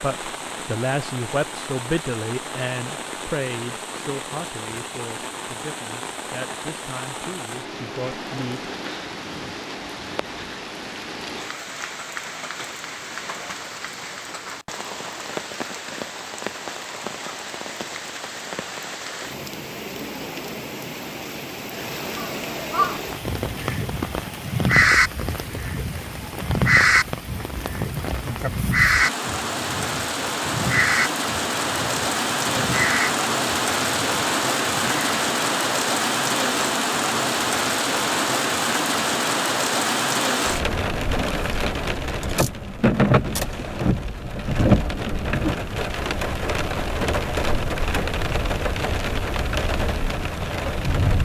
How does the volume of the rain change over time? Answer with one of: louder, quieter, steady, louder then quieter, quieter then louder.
louder.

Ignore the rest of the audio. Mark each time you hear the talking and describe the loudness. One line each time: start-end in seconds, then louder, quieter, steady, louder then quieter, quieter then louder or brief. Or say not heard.
0.0-8.6 quieter.